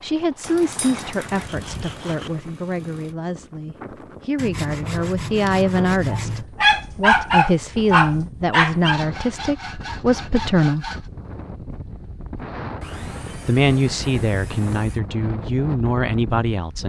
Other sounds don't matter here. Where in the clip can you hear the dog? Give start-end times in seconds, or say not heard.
6.1-9.0.